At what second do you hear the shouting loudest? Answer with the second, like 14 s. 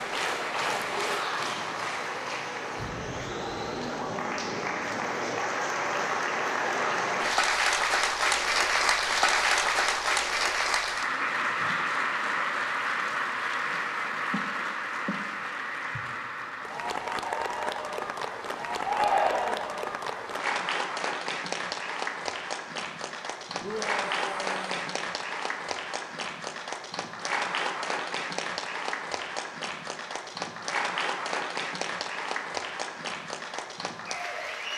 19 s.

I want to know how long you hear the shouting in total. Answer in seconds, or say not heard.
3 s.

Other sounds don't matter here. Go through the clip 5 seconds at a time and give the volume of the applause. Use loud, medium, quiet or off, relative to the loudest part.
medium, loud, loud, medium, medium, medium, medium.